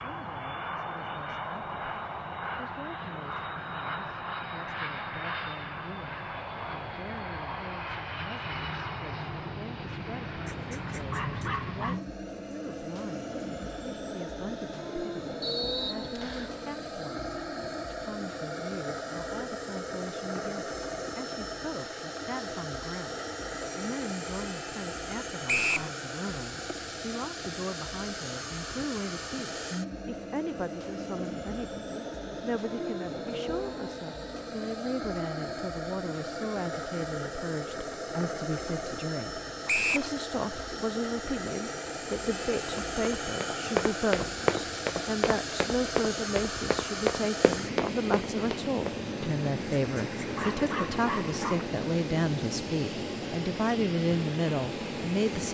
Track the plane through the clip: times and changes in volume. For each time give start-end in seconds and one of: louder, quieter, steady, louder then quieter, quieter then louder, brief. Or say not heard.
0.0-55.4 steady.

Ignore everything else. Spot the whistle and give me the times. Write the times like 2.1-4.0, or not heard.
15.4-16.5, 25.4-25.9, 39.6-40.1.